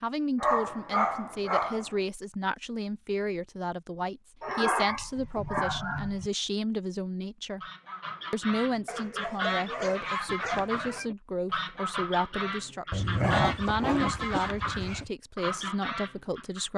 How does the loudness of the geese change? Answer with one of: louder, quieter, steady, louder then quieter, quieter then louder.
steady.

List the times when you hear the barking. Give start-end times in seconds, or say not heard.
0.4-1.9, 4.4-6.3, 8.8-11.1, 12.9-15.1.